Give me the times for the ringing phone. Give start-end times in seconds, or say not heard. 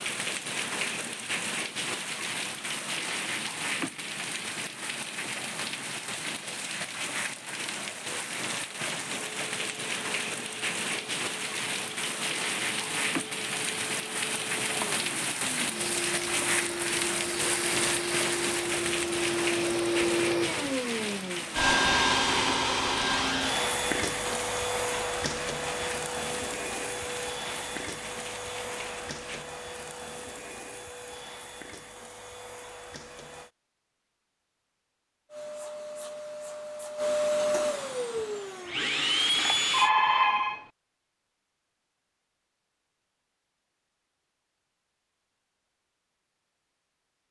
39.4-40.6.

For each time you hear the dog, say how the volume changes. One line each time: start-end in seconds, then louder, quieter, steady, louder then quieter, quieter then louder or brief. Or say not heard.
not heard.